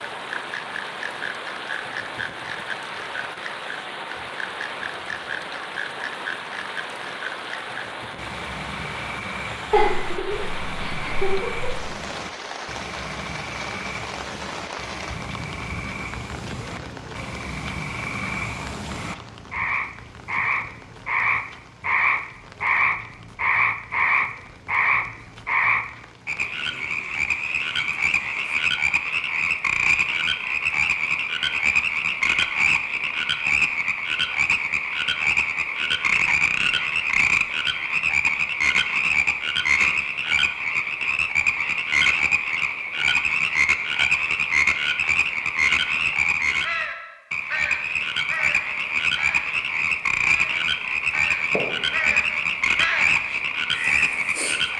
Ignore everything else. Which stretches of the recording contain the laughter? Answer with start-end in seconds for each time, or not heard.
9.7-11.8, 51.5-52.1.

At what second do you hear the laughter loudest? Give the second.
10 s.